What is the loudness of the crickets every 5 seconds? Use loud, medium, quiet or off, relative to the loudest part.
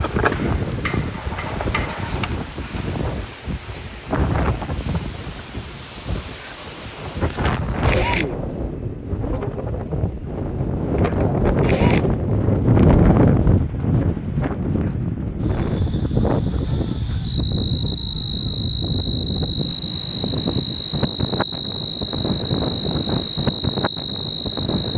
loud, loud, medium, loud, loud.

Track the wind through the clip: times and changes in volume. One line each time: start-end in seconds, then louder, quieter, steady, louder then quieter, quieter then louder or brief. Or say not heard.
0.0-24.9 louder then quieter.